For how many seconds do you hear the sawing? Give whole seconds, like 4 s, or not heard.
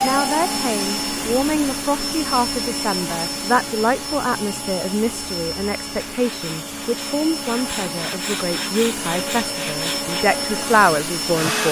4 s.